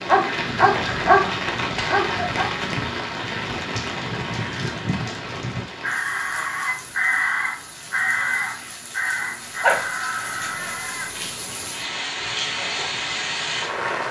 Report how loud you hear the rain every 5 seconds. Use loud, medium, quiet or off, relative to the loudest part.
loud, medium, loud.